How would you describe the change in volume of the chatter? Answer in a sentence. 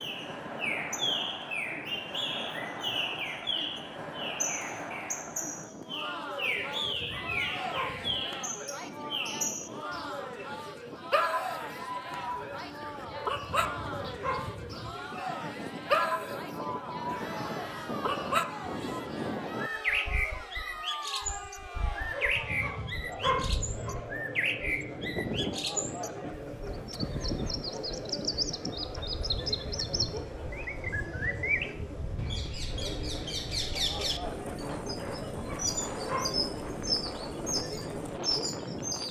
The volume of the chatter stays about the same.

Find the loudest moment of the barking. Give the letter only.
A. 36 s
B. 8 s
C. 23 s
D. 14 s
C.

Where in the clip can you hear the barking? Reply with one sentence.
The barking can be heard from 6.5 to 8.2 s, from 13.1 to 14.9 s, from 22.1 to 23.9 s and from 35.0 to 36.4 s.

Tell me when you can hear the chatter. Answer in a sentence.
The chatter can be heard from 0.0 to 39.0 s.